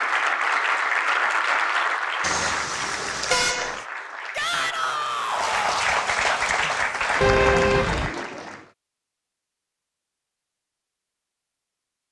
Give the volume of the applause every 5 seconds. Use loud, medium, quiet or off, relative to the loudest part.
loud, loud, off.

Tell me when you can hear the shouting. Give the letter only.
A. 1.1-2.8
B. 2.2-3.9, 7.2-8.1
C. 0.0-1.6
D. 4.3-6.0
D.